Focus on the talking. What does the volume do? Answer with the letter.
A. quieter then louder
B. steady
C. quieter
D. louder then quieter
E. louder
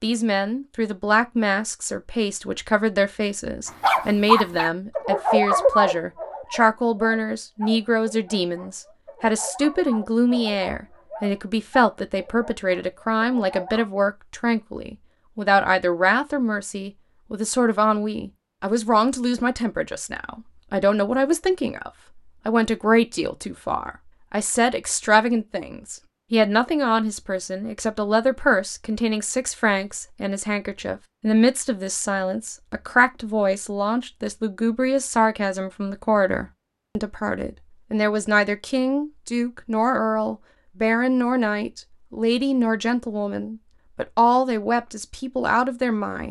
B.